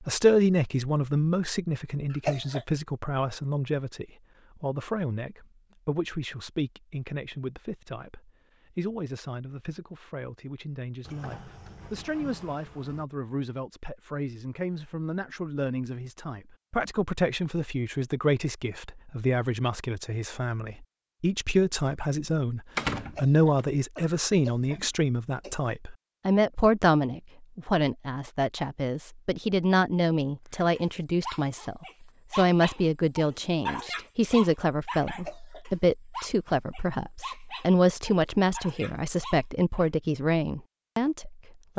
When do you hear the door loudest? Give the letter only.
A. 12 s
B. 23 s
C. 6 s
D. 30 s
B.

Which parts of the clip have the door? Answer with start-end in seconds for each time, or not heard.
11.1-13.1, 22.8-23.6.